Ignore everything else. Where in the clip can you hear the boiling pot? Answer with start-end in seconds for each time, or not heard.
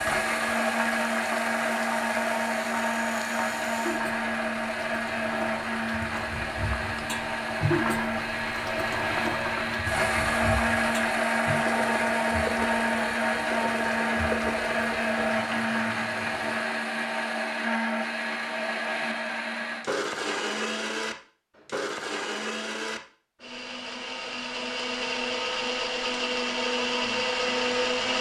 0.2-16.9.